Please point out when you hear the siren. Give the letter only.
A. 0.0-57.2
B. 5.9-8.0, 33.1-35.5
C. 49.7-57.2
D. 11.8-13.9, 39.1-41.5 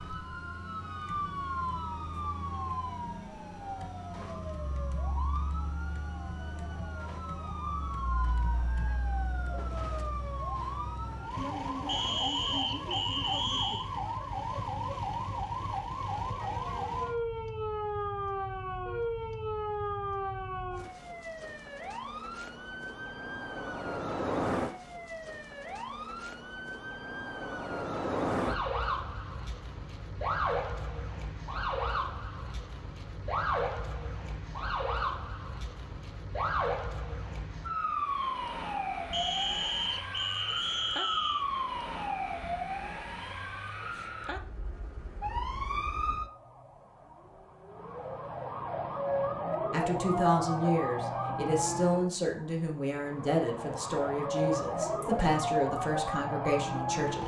A.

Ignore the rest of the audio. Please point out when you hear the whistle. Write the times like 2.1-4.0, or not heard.
11.8-13.9, 39.1-41.5.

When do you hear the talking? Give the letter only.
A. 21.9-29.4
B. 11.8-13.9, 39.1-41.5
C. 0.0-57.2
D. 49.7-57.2
D.